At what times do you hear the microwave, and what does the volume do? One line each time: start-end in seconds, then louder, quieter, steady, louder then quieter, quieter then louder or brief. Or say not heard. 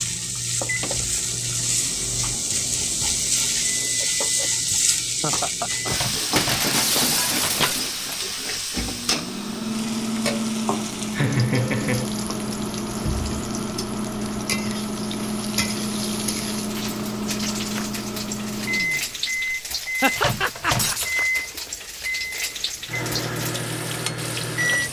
0.0-24.8 louder.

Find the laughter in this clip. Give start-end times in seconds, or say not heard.
5.2-5.9, 11.1-12.1, 20.0-20.9.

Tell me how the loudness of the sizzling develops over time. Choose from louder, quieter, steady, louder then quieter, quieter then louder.
quieter.